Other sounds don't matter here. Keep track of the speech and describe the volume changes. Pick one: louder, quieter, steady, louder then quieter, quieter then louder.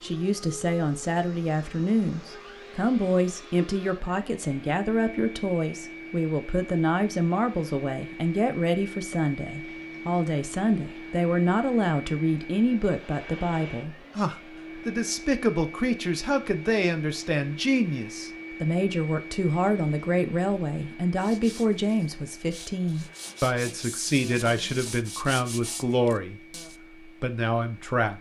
steady.